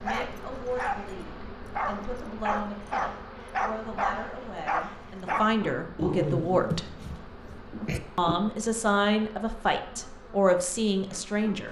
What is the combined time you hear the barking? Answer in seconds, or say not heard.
8 s.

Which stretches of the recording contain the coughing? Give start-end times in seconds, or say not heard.
not heard.